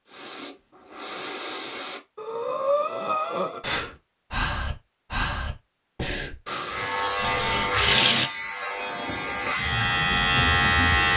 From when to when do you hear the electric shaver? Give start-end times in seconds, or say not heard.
6.7-11.1.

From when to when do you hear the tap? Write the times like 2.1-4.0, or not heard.
6.7-8.3.